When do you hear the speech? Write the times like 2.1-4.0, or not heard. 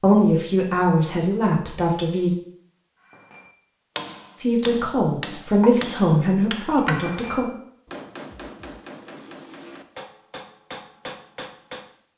0.0-2.3, 4.3-7.5.